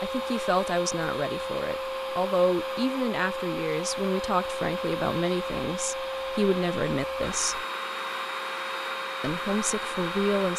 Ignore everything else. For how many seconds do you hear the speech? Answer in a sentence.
The speech can be heard for 9 seconds in total.